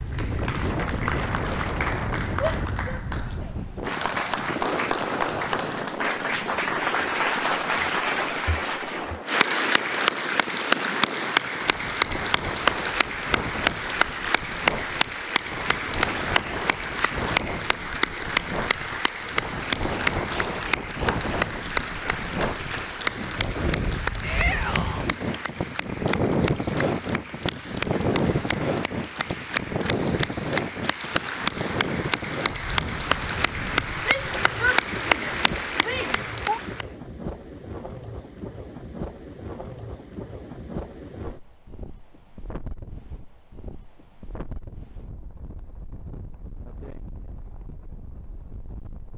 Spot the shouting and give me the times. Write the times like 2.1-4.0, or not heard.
2.4-3.5, 24.2-25.1, 34.0-36.6.